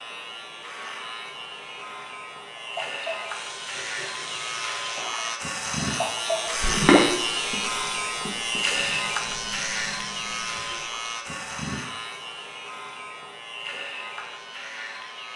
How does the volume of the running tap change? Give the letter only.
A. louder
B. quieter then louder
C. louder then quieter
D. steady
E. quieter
C.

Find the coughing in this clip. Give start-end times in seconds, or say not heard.
not heard.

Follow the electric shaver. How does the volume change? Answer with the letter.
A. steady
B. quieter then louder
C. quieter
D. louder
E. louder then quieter
E.